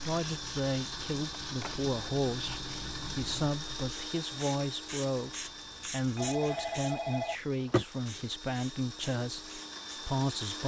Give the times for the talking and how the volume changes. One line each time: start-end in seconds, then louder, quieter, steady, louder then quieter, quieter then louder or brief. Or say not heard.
0.0-2.5 brief
3.1-5.3 brief
5.9-10.6 steady.